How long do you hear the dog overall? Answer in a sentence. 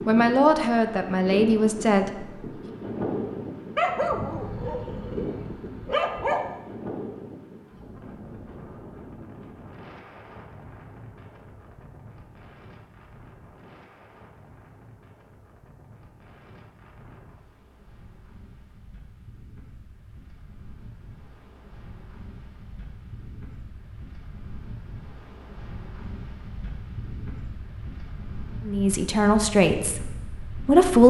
The dog can be heard for 3 seconds in total.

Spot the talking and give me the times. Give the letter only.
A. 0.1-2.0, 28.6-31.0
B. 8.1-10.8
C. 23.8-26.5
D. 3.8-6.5
A.